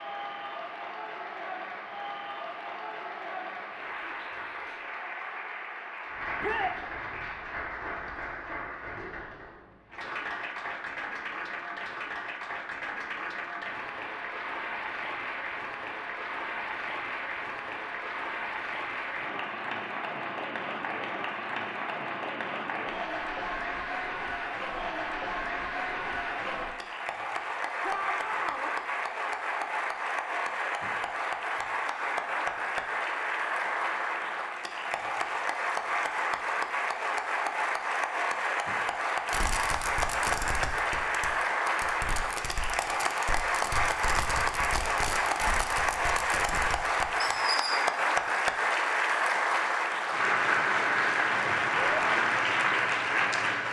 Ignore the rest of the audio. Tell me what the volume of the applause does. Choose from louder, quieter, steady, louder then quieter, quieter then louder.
louder.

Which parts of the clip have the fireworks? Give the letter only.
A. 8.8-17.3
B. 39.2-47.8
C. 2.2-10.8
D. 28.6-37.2
B.